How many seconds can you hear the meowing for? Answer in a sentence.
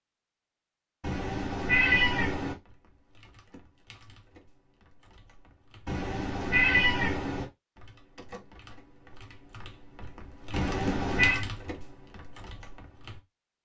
The meowing can be heard for 4 seconds in total.